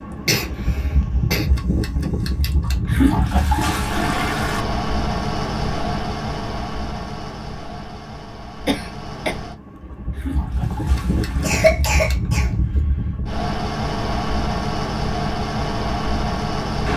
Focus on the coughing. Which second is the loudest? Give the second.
12 s.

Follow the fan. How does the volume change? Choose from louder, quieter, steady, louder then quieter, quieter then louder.
quieter then louder.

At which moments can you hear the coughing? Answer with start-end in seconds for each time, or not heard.
0.2-1.5, 8.7-9.3, 11.4-12.5.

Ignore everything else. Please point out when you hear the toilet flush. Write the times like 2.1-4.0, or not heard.
2.6-4.7, 9.8-11.7.